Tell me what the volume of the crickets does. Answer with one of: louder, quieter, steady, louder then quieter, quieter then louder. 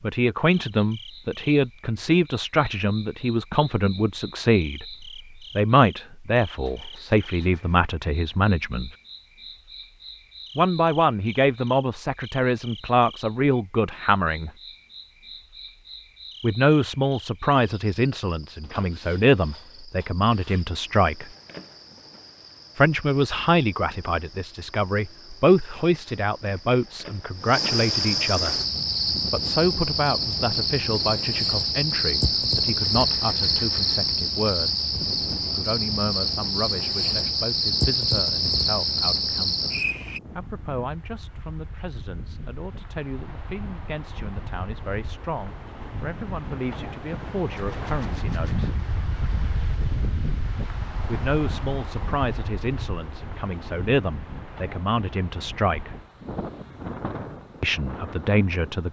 louder.